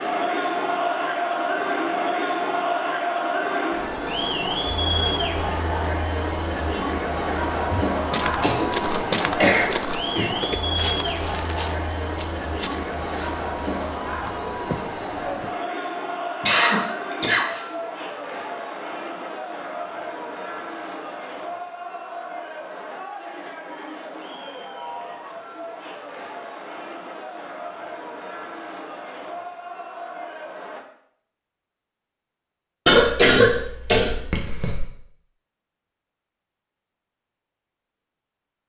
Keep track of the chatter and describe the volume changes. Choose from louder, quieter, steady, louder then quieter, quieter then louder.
quieter.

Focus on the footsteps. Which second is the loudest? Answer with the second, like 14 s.
9 s.